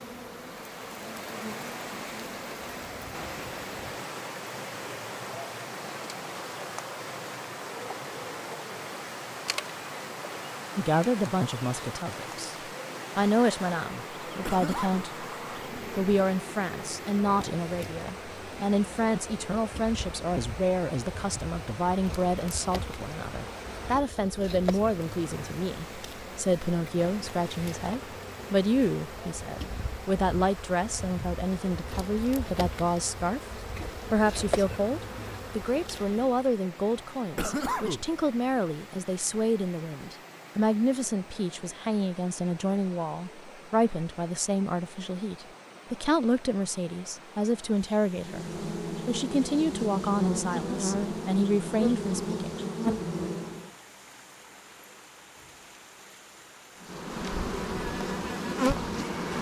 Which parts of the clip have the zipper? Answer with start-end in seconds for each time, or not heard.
not heard.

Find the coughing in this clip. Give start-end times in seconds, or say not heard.
14.4-15.1, 37.4-38.1.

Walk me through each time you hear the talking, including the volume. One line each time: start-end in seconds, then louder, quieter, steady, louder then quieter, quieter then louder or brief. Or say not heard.
10.8-12.6 brief
13.2-33.4 steady
34.0-52.5 steady.